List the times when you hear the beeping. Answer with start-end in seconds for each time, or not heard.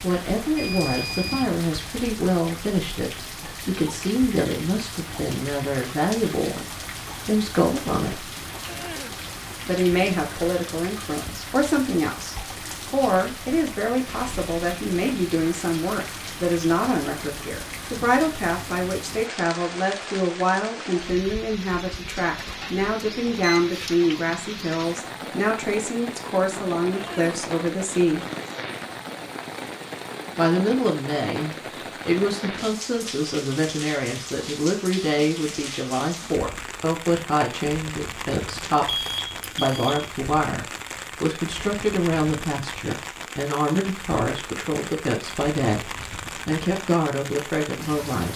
0.6-1.5, 22.6-23.7, 38.9-40.1.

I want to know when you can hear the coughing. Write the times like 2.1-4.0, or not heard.
8.7-9.2, 26.9-27.4.